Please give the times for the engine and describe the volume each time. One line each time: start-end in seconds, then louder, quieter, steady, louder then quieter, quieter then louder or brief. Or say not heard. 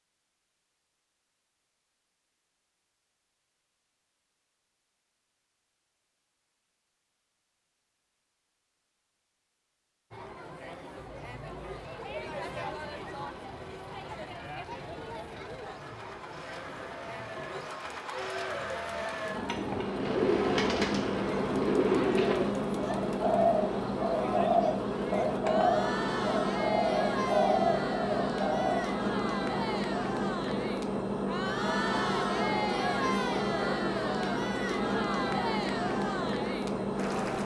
10.9-37.4 louder.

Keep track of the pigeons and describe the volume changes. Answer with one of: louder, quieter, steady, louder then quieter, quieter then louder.
steady.